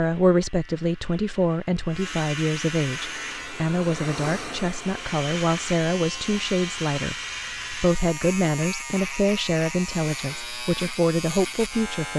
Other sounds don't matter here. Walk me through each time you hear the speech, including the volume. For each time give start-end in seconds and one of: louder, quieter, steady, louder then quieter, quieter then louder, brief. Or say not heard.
0.0-12.1 steady.